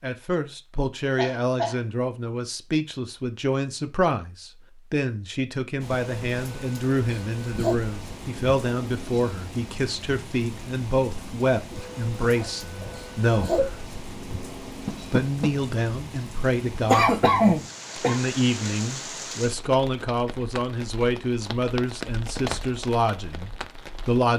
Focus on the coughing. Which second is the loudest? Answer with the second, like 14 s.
17 s.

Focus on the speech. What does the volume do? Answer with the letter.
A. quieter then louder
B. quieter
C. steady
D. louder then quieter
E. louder
C.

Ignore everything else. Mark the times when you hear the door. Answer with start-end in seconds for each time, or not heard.
14.8-15.6.